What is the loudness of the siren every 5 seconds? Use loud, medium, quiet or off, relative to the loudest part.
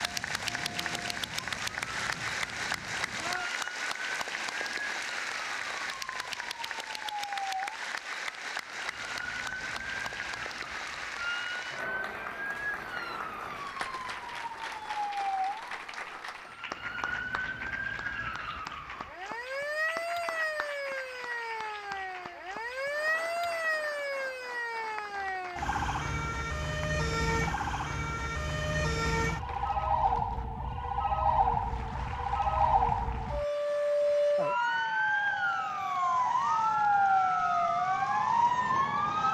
quiet, quiet, quiet, medium, medium, medium, loud, loud.